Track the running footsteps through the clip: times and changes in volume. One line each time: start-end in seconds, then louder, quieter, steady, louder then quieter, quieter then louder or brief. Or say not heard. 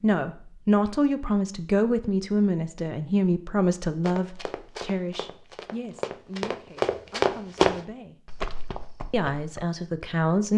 4.0-9.7 louder then quieter.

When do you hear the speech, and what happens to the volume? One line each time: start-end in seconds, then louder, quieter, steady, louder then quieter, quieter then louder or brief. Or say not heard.
0.0-8.2 quieter
9.1-10.5 brief.